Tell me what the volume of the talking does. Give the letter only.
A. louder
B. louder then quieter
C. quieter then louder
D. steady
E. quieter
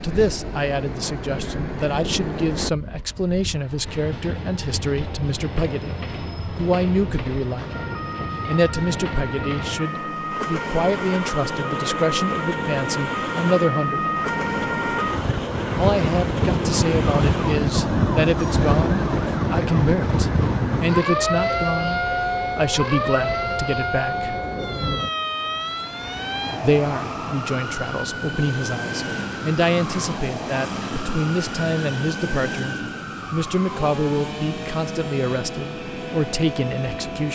D.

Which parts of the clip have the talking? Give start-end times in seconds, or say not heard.
0.0-14.1, 15.7-24.4, 26.6-37.3.